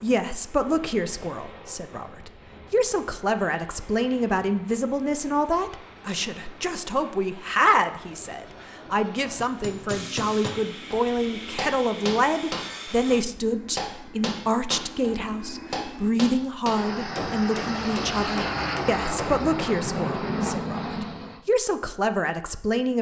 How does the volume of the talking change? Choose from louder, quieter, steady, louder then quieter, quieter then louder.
steady.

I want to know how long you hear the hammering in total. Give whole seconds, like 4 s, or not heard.
10 s.